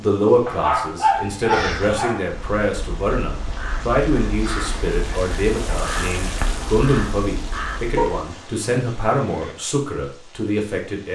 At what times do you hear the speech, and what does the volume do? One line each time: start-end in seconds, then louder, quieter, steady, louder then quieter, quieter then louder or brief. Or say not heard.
0.0-11.0 steady.